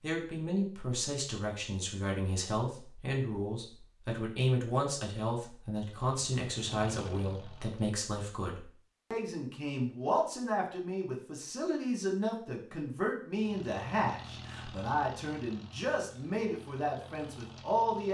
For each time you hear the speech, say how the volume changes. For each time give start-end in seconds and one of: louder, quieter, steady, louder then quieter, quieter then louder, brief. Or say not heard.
0.0-18.0 steady.